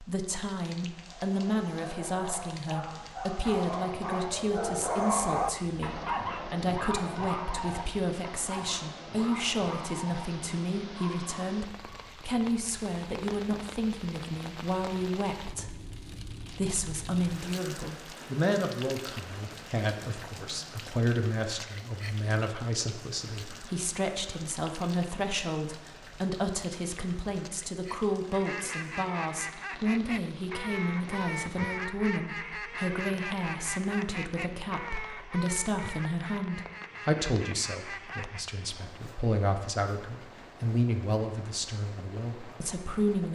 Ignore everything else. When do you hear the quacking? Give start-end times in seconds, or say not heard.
28.3-38.5.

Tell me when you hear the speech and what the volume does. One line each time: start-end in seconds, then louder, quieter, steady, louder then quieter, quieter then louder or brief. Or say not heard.
0.0-43.3 steady.